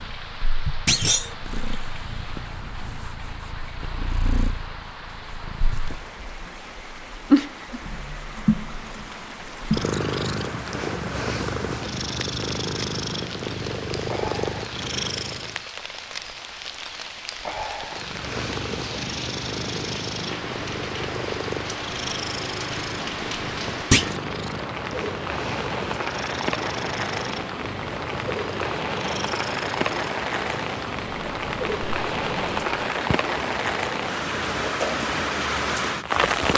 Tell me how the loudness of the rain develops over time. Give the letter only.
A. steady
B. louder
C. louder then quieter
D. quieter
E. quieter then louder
B.